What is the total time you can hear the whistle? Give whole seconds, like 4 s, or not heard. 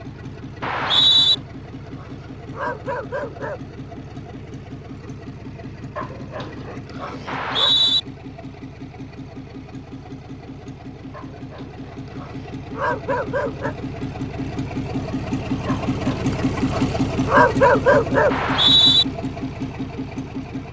2 s.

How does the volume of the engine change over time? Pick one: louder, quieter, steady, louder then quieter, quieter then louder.
louder.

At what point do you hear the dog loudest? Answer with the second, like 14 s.
18 s.